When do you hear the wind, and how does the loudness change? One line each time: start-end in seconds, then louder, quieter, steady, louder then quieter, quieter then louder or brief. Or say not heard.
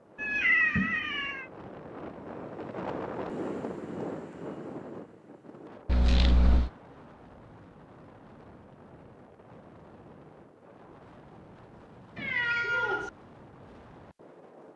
0.0-14.7 quieter.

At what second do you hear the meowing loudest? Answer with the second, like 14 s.
1 s.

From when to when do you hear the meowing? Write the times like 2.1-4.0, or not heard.
0.1-1.4, 5.8-6.7, 12.2-13.1.